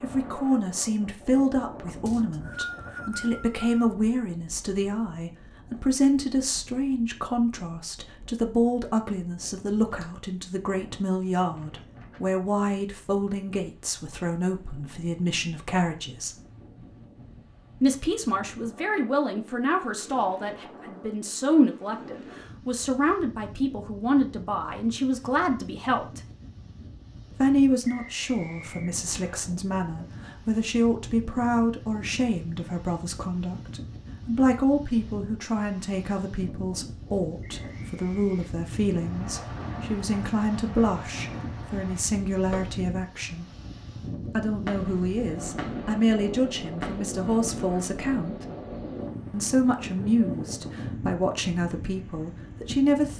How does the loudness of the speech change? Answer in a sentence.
The loudness of the speech stays about the same.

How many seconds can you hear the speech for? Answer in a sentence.
You can hear the speech for 49 seconds altogether.